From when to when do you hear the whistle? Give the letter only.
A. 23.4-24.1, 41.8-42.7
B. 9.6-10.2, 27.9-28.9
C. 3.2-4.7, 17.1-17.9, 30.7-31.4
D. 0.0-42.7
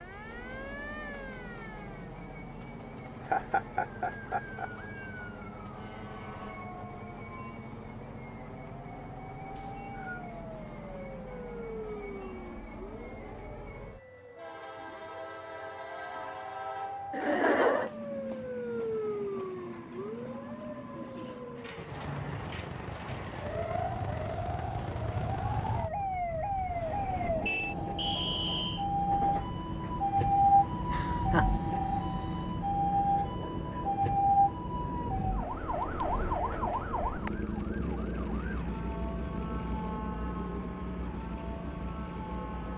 B.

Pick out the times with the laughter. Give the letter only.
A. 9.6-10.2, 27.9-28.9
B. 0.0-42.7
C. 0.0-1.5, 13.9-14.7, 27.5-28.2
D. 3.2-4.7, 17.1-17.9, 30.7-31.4
D.